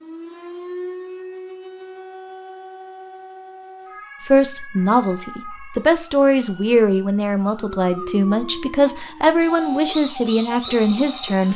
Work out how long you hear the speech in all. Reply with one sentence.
The speech can be heard for 7 seconds in total.